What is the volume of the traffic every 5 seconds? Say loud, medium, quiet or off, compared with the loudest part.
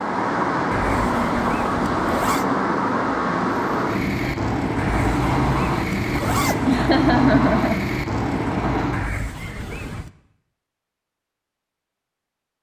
loud, loud, off.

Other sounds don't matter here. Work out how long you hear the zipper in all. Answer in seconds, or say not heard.
5 s.